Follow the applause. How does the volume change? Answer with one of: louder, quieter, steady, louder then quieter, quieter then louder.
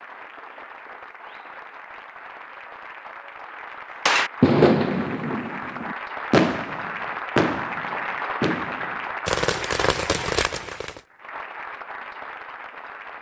louder then quieter.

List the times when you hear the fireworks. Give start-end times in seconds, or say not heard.
4.0-11.0.